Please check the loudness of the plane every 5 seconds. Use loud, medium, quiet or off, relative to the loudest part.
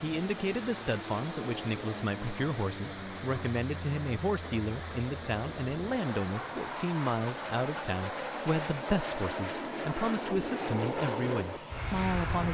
medium, loud, loud.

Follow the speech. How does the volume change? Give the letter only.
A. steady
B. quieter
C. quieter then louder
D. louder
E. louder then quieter
A.